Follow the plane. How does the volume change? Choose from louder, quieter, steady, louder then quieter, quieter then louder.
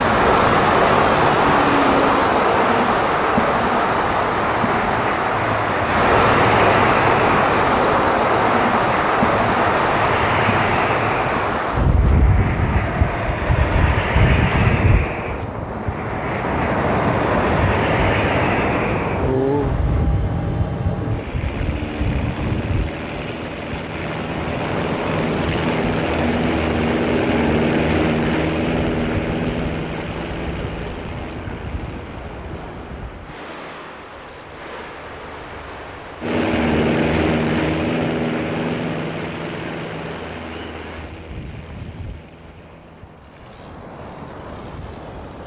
steady.